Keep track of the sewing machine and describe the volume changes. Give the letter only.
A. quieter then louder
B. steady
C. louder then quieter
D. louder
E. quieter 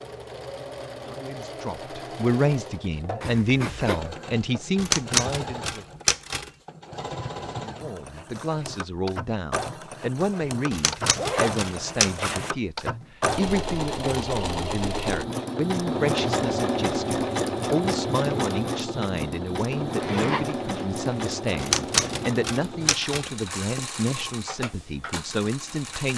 C.